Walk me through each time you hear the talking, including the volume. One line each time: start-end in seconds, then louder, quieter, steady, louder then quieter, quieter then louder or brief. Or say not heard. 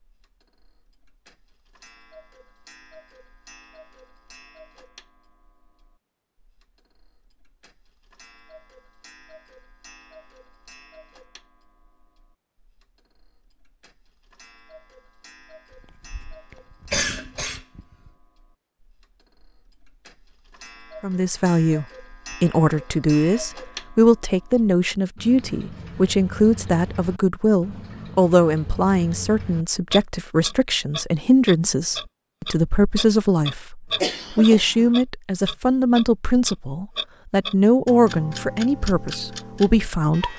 21.0-40.3 steady.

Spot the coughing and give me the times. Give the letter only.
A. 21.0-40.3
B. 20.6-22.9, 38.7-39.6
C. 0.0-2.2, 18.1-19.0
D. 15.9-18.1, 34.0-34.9
D.